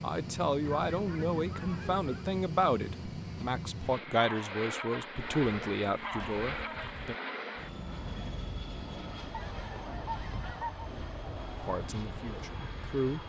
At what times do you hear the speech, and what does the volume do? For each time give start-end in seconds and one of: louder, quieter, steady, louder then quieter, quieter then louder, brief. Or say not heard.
0.0-7.2 steady
11.5-13.2 brief.